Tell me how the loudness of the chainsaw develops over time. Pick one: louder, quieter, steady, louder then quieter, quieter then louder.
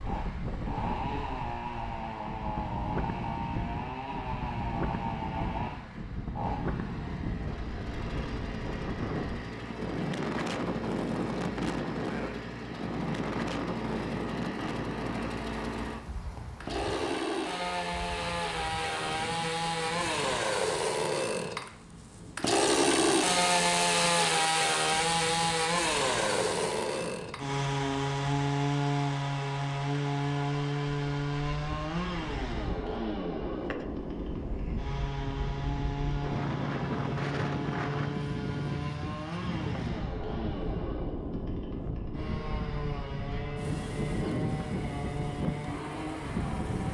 louder then quieter.